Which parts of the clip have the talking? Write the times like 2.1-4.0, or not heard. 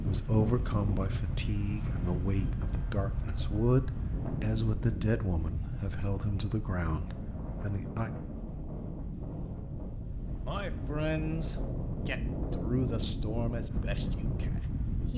0.0-8.1, 10.4-15.1.